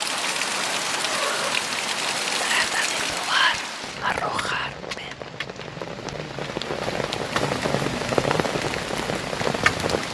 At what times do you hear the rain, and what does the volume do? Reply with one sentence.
You can hear the rain from 0.0 to 10.0 s, getting quieter then louder.